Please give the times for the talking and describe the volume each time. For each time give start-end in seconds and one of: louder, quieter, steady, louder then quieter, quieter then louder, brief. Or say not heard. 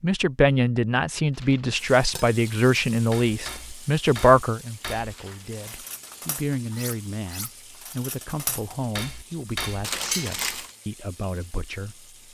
0.0-12.1 quieter.